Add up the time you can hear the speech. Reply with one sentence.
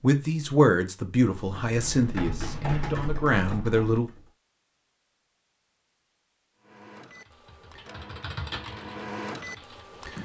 The speech can be heard for 4 seconds in total.